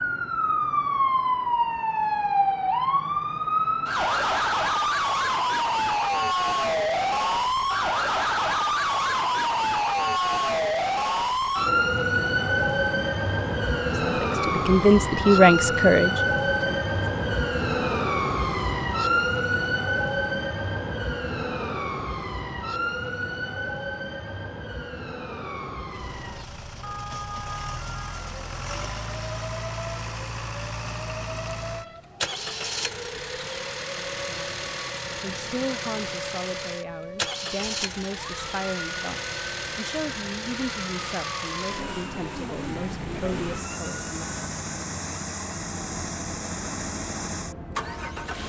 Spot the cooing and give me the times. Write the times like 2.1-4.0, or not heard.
not heard.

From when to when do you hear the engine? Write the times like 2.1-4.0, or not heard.
25.9-48.4.